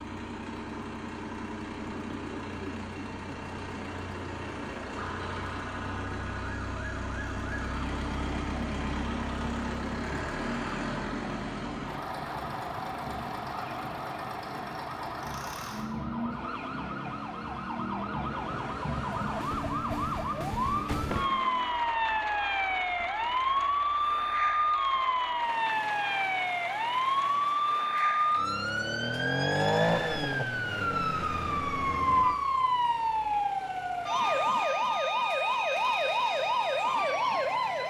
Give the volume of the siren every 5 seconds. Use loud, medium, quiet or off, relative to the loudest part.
quiet, quiet, quiet, medium, loud, loud, loud, loud.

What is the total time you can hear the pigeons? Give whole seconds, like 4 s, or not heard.
not heard.